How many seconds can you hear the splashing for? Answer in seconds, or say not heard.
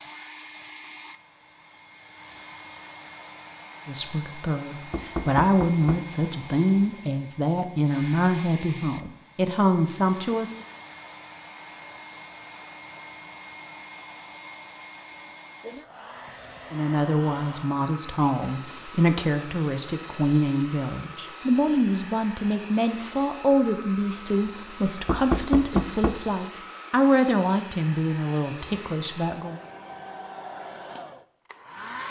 not heard.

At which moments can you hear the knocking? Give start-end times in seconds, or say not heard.
4.9-6.0, 25.1-26.2.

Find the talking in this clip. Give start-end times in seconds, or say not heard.
3.9-10.6, 16.7-29.6.